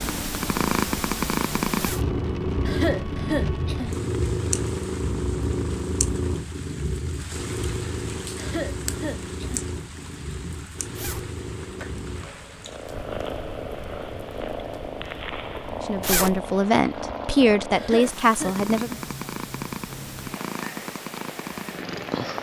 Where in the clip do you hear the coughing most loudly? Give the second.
3 s.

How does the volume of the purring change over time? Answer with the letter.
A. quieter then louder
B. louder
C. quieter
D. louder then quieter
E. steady
C.